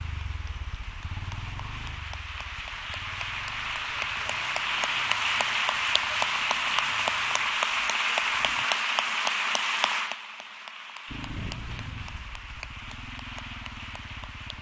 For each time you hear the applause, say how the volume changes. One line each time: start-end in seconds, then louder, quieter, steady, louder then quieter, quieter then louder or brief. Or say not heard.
0.0-14.5 louder then quieter.